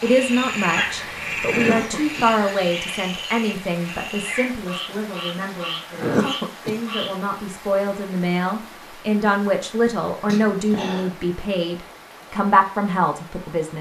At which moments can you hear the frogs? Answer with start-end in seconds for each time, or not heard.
0.0-7.1.